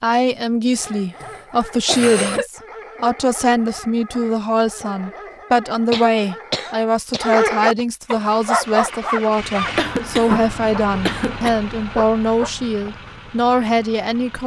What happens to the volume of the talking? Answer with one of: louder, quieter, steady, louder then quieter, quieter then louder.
steady.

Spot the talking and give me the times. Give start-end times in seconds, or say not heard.
0.0-14.4.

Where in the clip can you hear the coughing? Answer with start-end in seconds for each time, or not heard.
0.8-2.5, 5.9-7.8, 9.7-11.6.